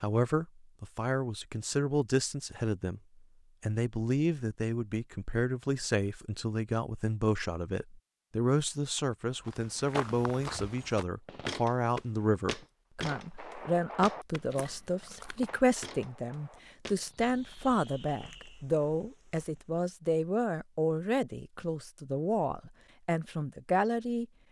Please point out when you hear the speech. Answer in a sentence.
The speech can be heard from 0.0 to 3.0 s and from 3.6 to 24.2 s.